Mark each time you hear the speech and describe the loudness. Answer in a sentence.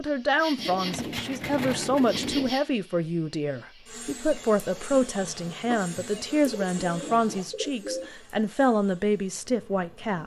You can hear the speech from 0.0 to 10.2 s, at a steady volume.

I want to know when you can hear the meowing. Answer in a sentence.
You can't hear the meowing here.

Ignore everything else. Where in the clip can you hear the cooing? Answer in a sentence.
The cooing can be heard from 0.6 to 2.5 s and from 5.6 to 8.1 s.